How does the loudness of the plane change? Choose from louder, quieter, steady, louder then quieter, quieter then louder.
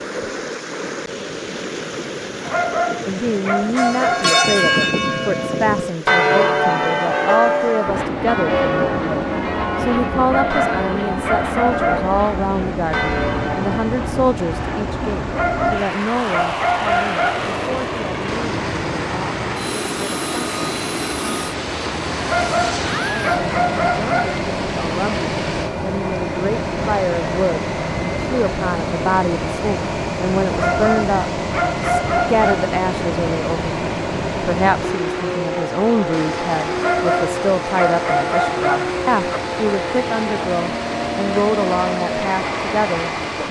steady.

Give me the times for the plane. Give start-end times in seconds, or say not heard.
7.8-43.4.